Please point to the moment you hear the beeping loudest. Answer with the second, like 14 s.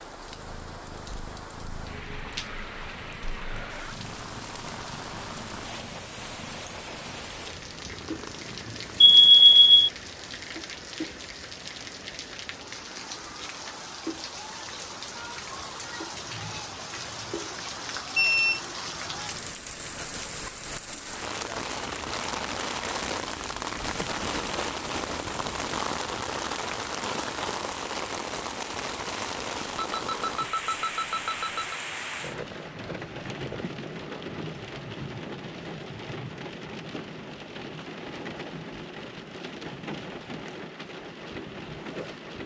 9 s.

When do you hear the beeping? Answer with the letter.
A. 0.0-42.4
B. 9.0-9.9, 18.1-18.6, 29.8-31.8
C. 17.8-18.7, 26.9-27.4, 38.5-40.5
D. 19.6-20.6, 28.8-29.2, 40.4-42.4
B.